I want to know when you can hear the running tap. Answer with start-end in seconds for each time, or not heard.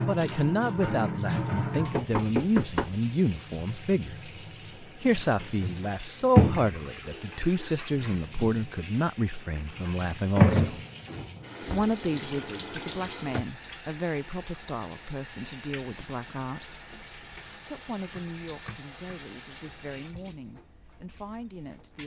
0.0-22.0.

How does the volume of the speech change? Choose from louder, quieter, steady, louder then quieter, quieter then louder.
quieter.